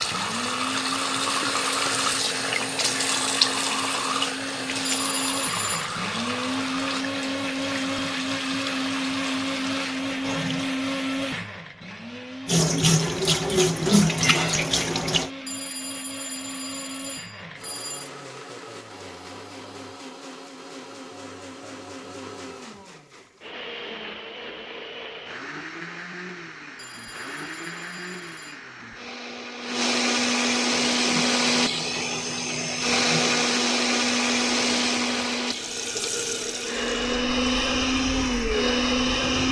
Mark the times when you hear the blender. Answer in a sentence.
The blender can be heard from 0.0 to 39.4 s.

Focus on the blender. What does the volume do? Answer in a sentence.
The loudness of the blender goes down, then up.